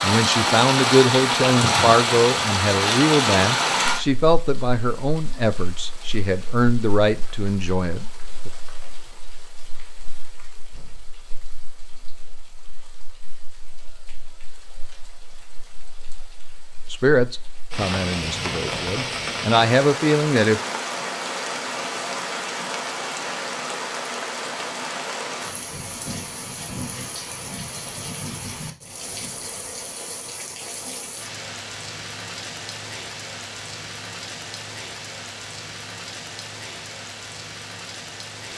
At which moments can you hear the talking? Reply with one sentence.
The talking can be heard from 0.0 to 8.5 s and from 16.9 to 20.6 s.